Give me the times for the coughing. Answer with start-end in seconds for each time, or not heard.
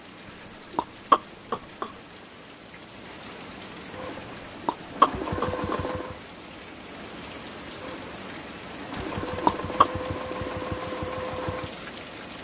0.8-1.9, 4.7-5.8, 8.9-9.8.